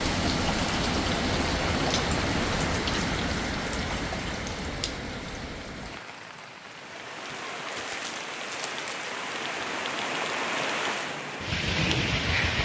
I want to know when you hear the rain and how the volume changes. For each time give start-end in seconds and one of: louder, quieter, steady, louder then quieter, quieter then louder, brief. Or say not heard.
0.0-12.5 quieter then louder.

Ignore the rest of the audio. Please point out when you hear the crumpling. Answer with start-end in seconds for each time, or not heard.
7.7-9.1.